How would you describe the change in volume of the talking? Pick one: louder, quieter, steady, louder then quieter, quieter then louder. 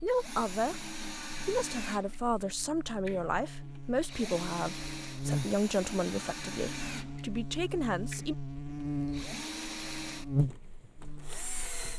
steady.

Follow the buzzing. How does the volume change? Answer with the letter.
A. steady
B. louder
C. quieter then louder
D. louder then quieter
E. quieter
B.